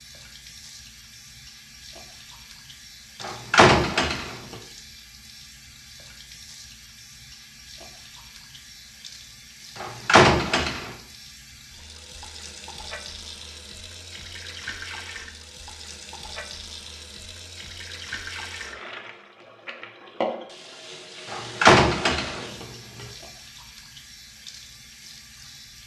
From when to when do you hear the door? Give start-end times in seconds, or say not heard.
3.2-4.5, 9.8-10.9, 21.3-23.1.